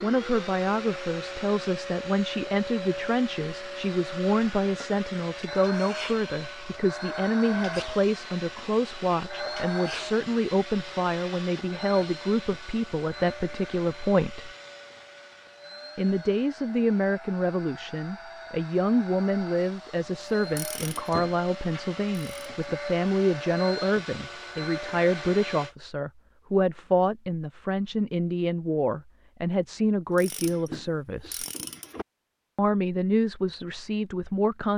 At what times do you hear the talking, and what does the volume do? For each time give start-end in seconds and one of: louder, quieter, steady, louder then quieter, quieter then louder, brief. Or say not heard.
0.0-14.5 steady
15.9-31.4 steady
32.5-34.7 brief.